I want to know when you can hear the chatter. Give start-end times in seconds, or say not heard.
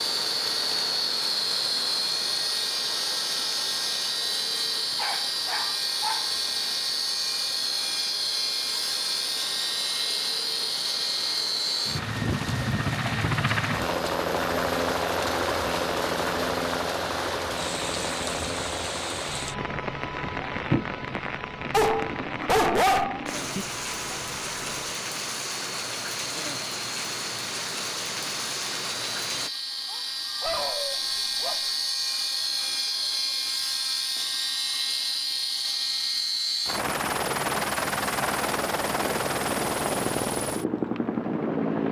not heard.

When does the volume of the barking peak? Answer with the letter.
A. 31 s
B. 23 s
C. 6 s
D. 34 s
B.